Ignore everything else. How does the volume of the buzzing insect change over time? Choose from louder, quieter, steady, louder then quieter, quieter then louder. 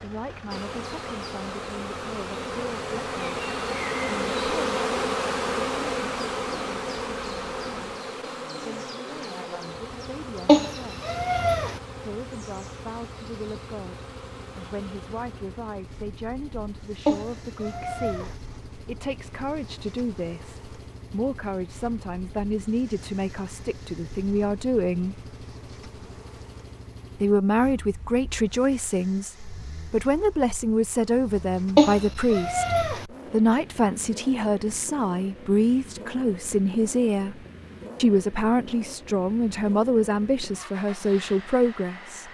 quieter.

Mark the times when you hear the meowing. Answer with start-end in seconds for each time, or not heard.
10.4-11.8, 17.1-18.4, 31.8-33.0.